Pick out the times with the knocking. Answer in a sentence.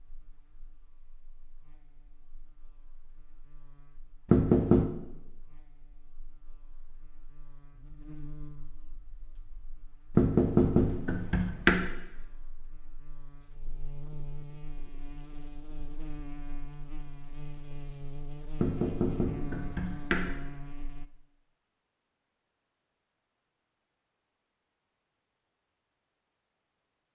The knocking can be heard from 4.2 to 4.9 s, from 10.2 to 11.9 s and from 18.6 to 20.3 s.